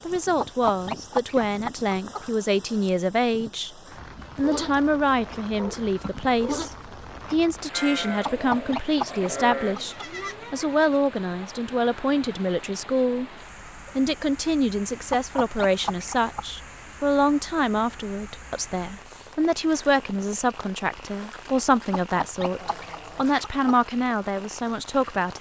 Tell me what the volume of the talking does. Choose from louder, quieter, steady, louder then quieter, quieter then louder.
steady.